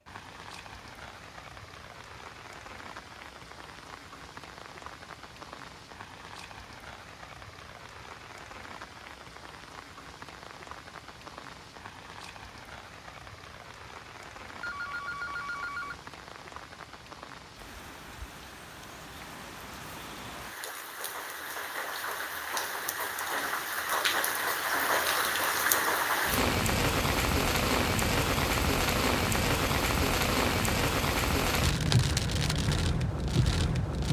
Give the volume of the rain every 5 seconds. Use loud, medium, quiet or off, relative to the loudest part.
quiet, quiet, quiet, quiet, medium, loud, loud.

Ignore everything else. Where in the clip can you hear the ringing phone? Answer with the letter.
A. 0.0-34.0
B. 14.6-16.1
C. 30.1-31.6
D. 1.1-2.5
B.